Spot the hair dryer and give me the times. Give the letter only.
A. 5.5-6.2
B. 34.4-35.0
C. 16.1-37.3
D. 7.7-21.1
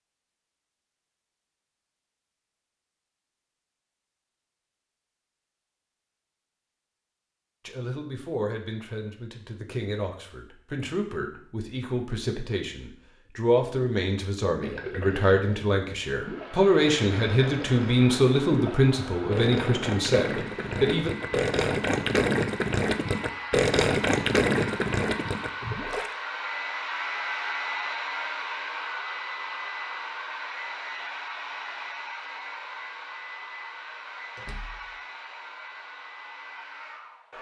C.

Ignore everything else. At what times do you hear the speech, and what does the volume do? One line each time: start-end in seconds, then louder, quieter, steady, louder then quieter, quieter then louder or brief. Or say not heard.
7.7-21.1 louder.